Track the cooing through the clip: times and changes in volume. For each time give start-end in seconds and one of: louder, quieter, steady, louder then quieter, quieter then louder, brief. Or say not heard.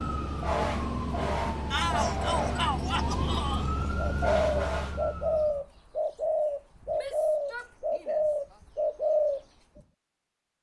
4.0-9.8 steady.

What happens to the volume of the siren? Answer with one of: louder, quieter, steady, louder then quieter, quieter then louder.
steady.